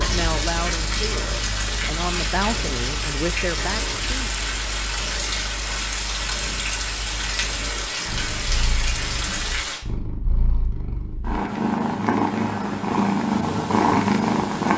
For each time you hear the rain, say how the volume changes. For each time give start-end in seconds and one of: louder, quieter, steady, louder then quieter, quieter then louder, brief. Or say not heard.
0.0-9.8 steady.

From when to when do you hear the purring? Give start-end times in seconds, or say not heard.
0.0-14.7.